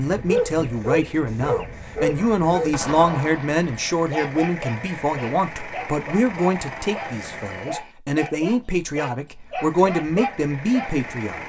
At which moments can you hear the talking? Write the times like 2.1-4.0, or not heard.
0.0-11.4.